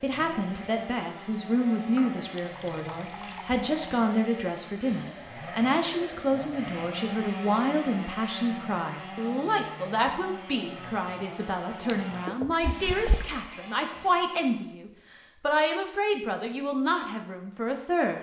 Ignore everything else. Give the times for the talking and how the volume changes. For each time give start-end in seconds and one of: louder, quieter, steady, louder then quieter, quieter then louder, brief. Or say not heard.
0.0-18.1 steady.